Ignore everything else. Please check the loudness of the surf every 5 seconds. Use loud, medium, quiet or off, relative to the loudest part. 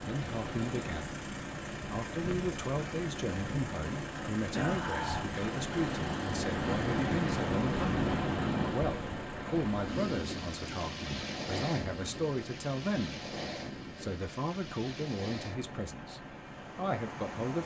medium, loud, medium, medium.